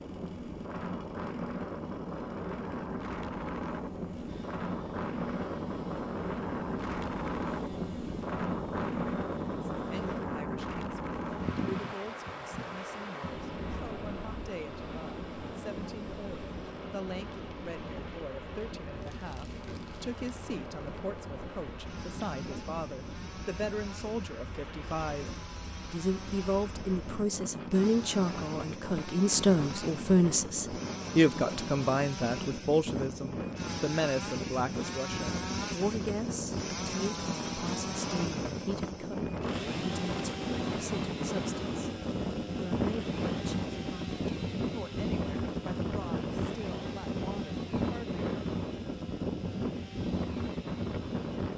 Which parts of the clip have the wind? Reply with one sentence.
The wind can be heard from 0.0 to 51.5 s.